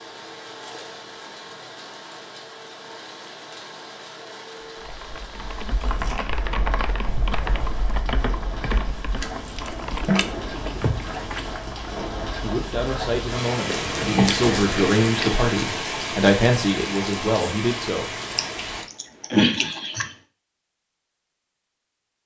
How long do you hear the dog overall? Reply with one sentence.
The dog can't be heard in this clip.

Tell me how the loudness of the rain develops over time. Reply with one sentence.
The loudness of the rain goes up.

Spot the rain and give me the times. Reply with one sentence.
You can hear the rain from 0.0 to 18.9 s.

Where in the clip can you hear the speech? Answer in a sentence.
The speech can be heard from 12.4 to 18.1 s.